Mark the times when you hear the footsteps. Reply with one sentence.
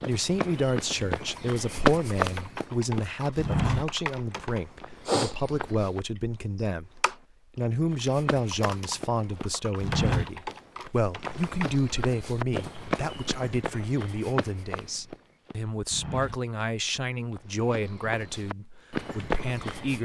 The footsteps can be heard from 0.0 to 6.0 s and from 7.9 to 20.0 s.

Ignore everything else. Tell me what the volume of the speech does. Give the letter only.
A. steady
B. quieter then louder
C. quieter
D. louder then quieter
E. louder
A.